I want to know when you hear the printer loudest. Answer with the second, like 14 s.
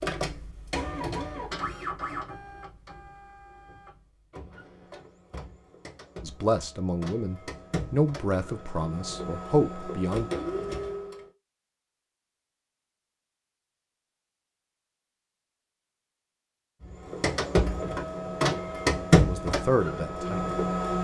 19 s.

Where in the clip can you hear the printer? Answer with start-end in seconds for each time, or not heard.
0.0-11.3, 16.9-20.9.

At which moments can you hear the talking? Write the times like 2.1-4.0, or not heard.
6.2-10.2, 19.1-20.6.